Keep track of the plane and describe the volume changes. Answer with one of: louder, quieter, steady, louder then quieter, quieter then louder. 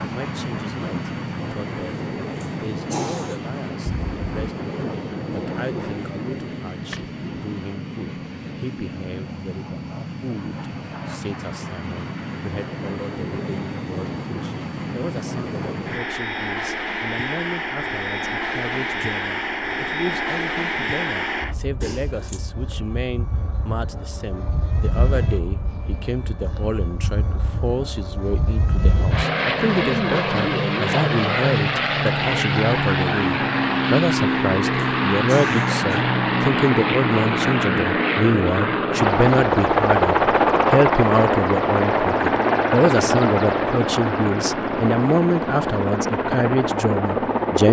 louder.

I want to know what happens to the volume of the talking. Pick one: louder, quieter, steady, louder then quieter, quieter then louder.
louder.